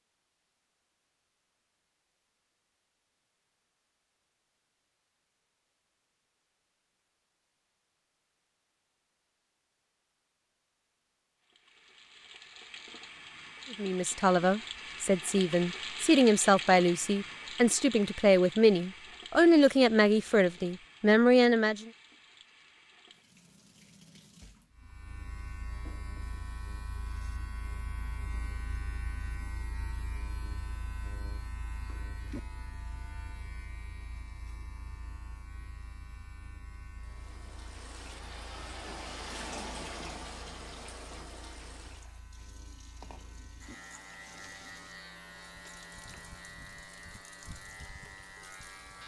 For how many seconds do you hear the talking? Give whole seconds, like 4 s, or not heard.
8 s.